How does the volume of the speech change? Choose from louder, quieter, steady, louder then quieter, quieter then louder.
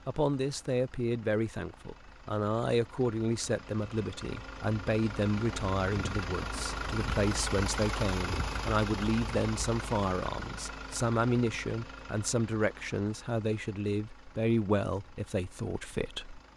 steady.